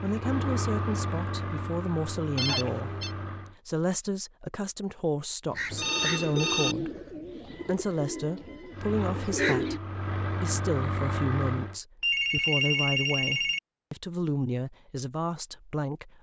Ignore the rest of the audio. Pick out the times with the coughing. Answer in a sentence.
You can't hear the coughing here.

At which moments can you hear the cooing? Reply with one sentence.
The cooing can be heard from 5.5 to 9.8 s.